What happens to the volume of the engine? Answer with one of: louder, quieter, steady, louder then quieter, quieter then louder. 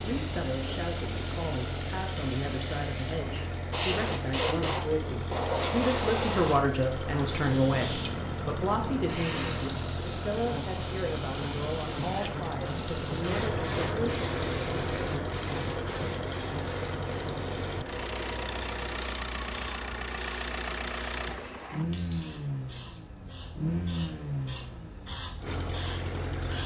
steady.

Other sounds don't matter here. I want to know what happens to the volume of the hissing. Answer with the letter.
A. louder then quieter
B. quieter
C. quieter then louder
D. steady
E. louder
B.